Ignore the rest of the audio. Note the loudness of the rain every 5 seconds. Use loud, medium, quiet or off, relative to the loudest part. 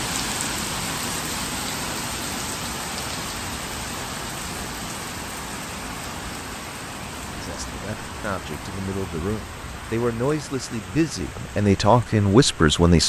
loud, medium, medium.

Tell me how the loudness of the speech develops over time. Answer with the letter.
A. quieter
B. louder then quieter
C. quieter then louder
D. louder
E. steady
D.